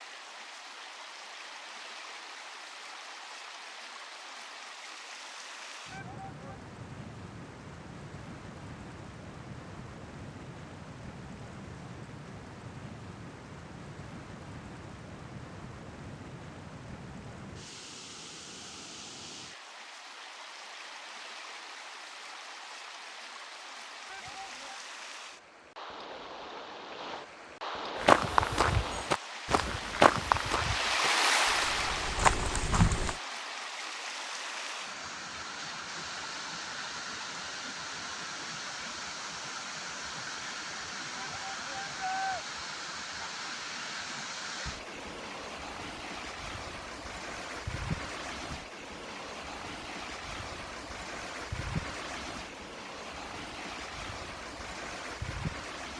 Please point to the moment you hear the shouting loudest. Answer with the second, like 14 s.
42 s.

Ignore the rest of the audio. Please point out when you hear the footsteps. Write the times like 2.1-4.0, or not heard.
28.0-33.1.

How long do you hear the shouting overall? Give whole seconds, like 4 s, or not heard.
3 s.